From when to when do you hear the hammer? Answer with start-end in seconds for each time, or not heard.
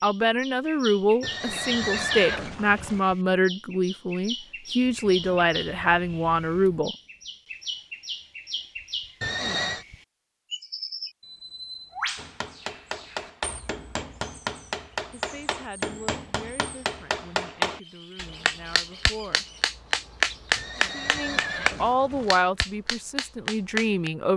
12.2-24.1.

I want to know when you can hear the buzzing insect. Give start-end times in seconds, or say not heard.
not heard.